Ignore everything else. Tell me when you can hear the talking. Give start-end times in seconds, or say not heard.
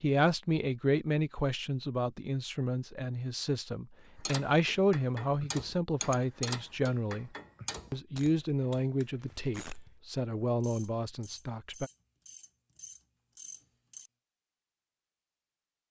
0.0-7.3, 7.9-11.9.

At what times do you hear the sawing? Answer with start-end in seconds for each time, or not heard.
not heard.